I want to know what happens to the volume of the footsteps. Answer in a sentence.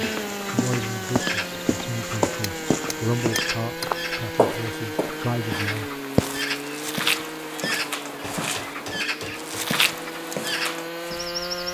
The loudness of the footsteps stays about the same.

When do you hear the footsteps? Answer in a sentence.
The footsteps can be heard from 0.0 to 11.2 s.